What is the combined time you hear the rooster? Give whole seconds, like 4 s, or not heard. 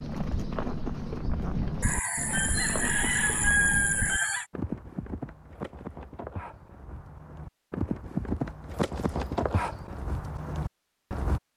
3 s.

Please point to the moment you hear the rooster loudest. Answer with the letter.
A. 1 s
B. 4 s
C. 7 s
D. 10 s
B.